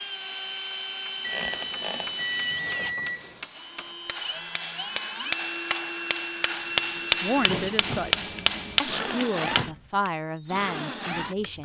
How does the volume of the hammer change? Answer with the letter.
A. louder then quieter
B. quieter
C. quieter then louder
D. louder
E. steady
D.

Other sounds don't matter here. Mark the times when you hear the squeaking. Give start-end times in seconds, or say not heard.
1.2-2.1, 8.8-9.7.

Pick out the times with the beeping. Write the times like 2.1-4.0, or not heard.
1.2-3.5, 7.6-8.8.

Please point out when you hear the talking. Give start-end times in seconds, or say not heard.
7.2-11.6.